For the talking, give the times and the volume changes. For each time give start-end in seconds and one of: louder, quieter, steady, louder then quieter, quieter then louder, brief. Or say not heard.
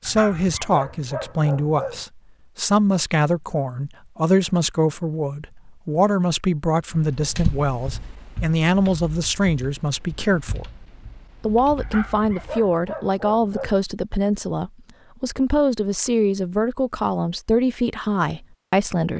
0.0-10.7 steady
11.4-19.1 steady.